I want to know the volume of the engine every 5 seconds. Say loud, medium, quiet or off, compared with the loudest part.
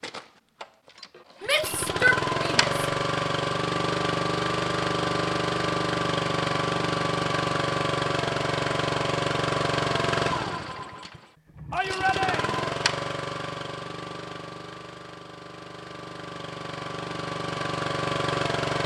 loud, loud, medium, medium.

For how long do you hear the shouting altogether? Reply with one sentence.
You can hear the shouting for 2 seconds altogether.